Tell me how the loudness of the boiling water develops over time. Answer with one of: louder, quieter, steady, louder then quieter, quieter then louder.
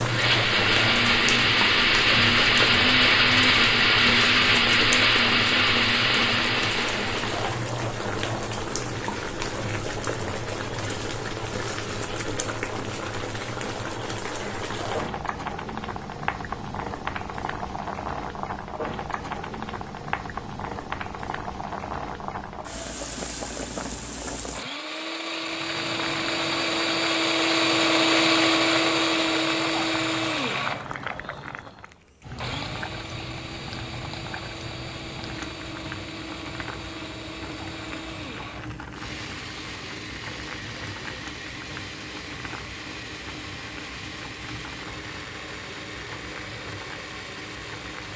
quieter.